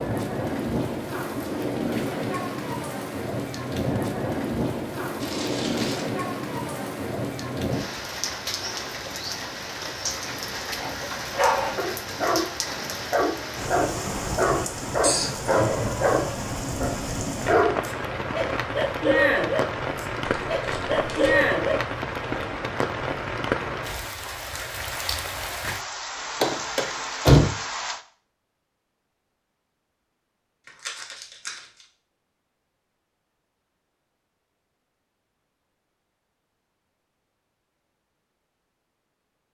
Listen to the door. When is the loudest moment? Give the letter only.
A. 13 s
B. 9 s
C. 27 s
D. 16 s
C.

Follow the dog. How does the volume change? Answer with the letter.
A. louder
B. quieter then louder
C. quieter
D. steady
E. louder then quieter
D.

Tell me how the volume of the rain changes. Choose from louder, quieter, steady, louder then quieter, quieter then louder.
steady.